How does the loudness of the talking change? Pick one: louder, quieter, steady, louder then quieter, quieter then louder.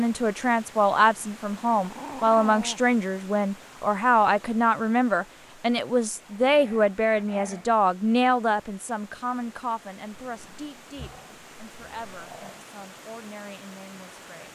quieter.